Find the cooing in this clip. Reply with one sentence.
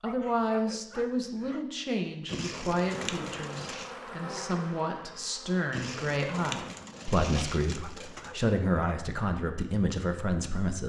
The cooing can be heard from 2.2 to 4.0 s and from 5.7 to 8.3 s.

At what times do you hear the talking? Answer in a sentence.
The talking can be heard from 0.0 to 10.8 s.